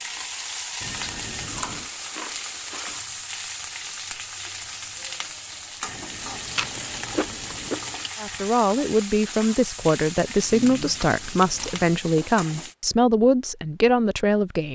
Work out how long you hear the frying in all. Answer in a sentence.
The frying can be heard for 13 seconds in total.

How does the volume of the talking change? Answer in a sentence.
The loudness of the talking stays about the same.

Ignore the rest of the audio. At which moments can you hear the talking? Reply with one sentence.
You can hear the talking from 8.2 to 14.7 s.